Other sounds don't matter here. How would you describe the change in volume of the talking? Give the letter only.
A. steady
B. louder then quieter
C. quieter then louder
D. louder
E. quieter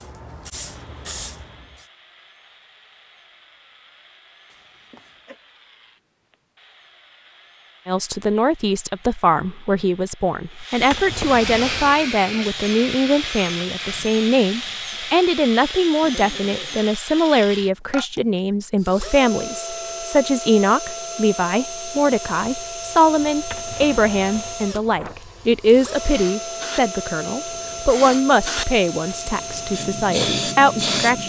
A.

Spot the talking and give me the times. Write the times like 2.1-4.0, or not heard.
7.8-31.2.